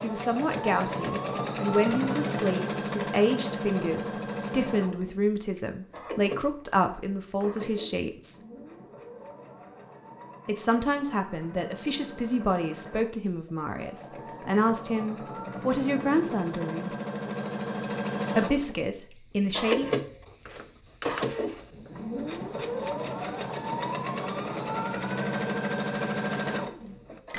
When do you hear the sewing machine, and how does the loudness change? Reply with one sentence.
You can hear the sewing machine from 0.0 to 27.3 s, getting quieter then louder.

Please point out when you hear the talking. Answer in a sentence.
You can hear the talking from 0.0 to 8.4 s, from 10.4 to 16.9 s and from 18.4 to 19.9 s.